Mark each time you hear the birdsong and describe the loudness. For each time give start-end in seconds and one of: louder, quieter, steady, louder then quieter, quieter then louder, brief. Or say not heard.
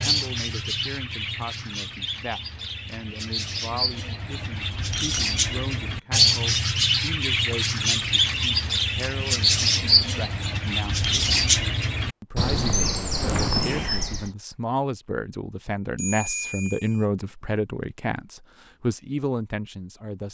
0.0-14.3 louder.